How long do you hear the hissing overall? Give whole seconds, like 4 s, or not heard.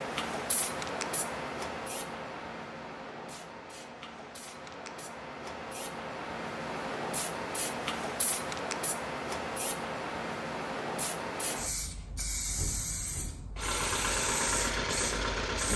16 s.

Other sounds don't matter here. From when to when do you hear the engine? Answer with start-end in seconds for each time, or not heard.
13.6-15.7.